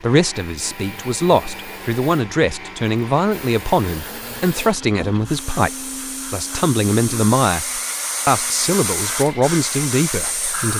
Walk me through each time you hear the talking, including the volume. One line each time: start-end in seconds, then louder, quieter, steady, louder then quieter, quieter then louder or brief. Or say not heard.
0.0-10.7 steady.